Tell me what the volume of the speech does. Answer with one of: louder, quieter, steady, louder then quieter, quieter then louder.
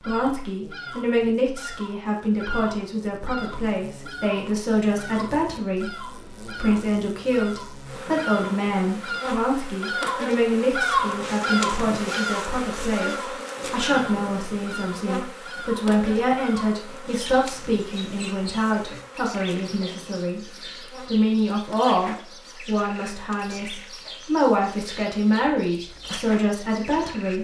steady.